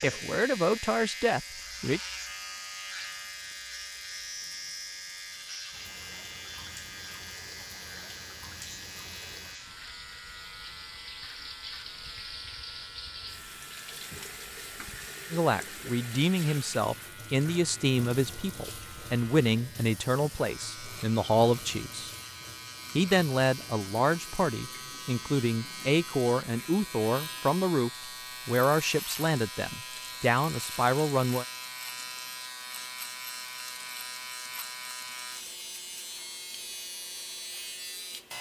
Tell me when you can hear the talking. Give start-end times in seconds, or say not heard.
0.0-2.0, 15.3-22.1, 22.9-31.4.